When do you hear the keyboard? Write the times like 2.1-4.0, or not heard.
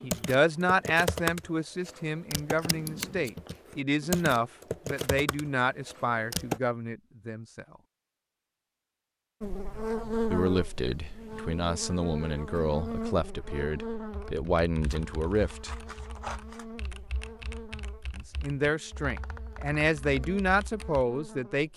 0.0-6.6, 14.1-21.1.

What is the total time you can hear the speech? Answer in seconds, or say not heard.
17 s.